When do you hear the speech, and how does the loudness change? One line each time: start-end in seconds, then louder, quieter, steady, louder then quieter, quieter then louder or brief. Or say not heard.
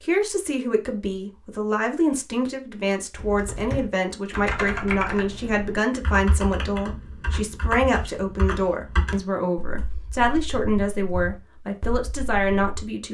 0.0-13.1 steady.